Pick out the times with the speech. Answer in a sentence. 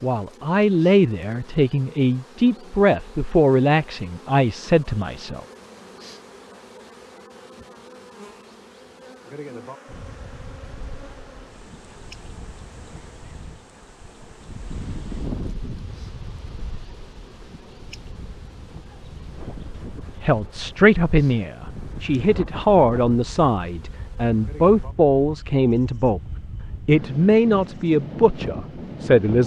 The speech can be heard from 0.0 to 5.4 s, from 20.2 to 26.2 s and from 26.9 to 29.4 s.